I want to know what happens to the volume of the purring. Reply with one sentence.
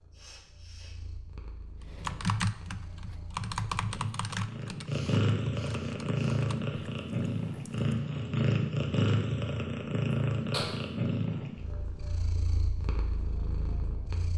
The volume of the purring goes up, then down.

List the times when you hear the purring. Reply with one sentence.
You can hear the purring from 0.0 to 14.3 s.